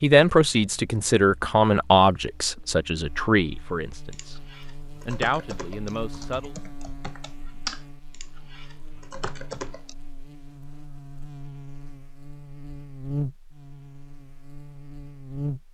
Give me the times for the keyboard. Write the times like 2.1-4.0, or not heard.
4.1-9.9.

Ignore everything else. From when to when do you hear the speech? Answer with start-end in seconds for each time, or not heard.
0.0-4.4, 5.0-6.5.